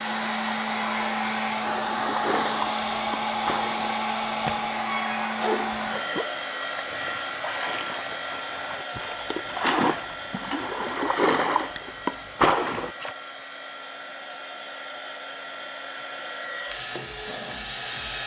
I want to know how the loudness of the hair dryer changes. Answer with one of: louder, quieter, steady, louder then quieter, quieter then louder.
quieter.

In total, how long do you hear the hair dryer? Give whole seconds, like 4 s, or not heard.
18 s.